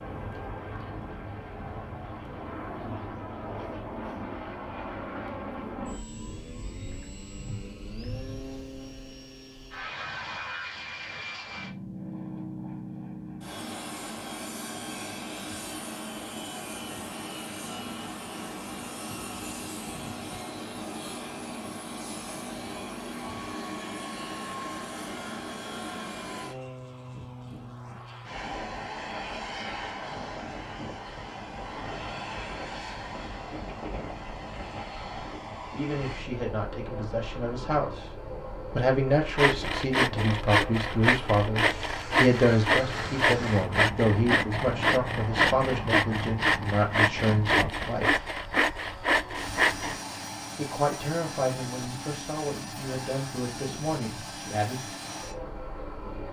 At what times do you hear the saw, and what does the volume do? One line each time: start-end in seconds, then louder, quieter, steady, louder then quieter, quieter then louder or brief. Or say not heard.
39.4-50.0 steady.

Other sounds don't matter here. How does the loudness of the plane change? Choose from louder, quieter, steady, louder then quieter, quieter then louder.
steady.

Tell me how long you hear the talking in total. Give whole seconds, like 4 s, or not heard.
16 s.